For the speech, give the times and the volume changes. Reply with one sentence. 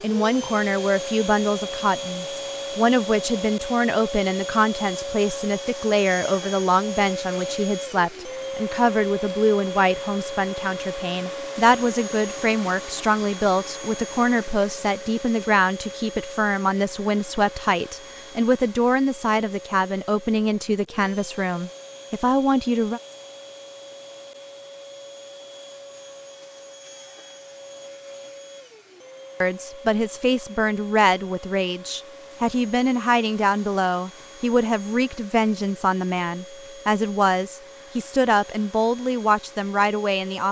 You can hear the speech from 0.0 to 23.0 s, at a steady volume; and from 29.4 to 40.4 s, at a steady volume.